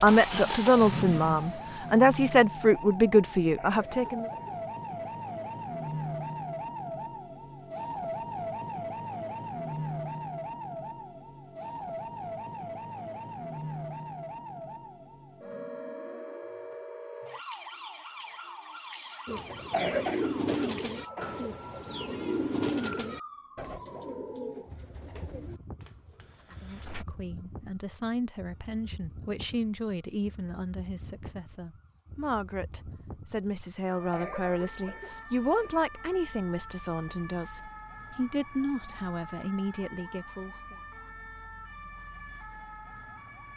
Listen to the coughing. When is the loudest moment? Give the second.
20 s.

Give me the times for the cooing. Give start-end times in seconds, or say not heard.
19.2-27.1.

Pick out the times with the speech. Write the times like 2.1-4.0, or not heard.
0.0-4.2, 26.6-40.8.